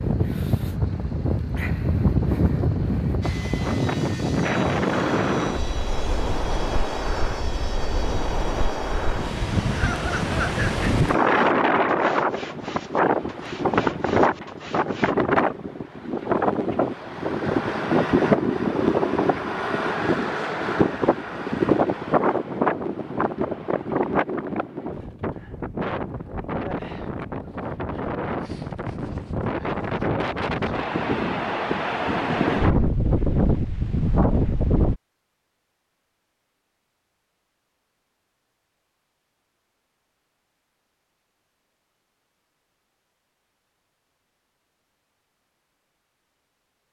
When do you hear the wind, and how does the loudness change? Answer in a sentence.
You can hear the wind from 0.0 to 35.0 s, at a steady volume.